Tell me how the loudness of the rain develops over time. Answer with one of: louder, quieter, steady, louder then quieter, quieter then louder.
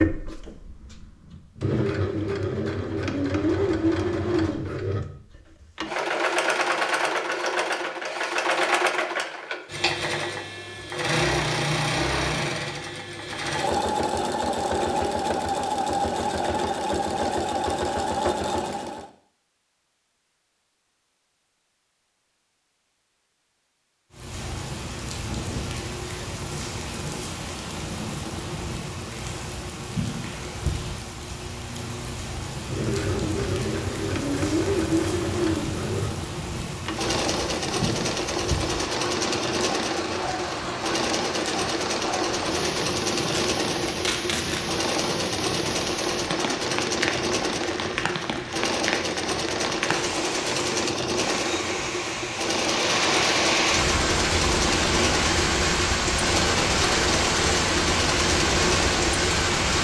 louder.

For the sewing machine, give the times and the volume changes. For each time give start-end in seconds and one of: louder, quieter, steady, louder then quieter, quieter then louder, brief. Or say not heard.
0.0-19.1 steady
32.6-59.7 steady.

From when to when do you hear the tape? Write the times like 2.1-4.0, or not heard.
43.2-44.6.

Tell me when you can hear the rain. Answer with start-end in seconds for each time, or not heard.
24.1-59.7.